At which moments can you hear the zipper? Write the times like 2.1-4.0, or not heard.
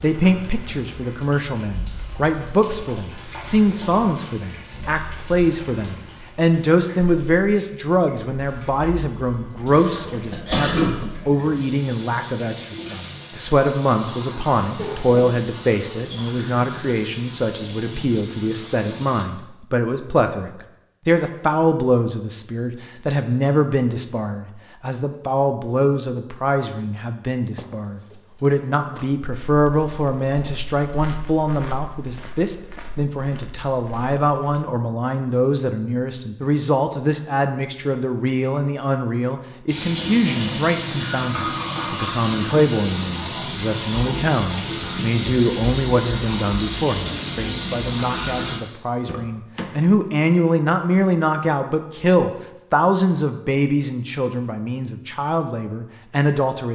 not heard.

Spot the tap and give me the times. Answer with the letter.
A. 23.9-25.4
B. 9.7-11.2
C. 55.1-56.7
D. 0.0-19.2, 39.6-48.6
D.